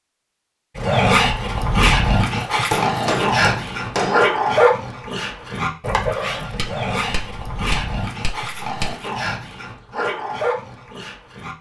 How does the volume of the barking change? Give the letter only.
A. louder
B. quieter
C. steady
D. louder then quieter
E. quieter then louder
B.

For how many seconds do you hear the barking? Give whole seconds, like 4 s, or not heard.
11 s.